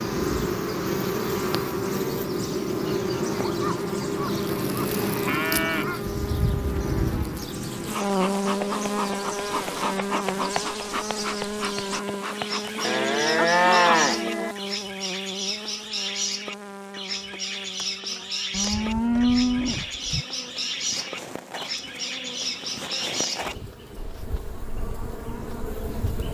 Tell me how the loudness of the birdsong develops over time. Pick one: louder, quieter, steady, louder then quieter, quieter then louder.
louder.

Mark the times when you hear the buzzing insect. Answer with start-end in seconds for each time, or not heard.
0.0-26.2.